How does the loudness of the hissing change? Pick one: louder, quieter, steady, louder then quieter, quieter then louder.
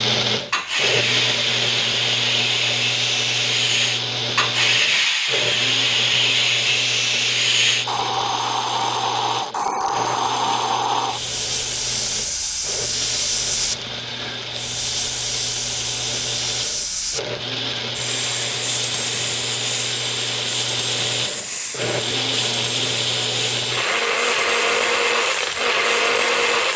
quieter.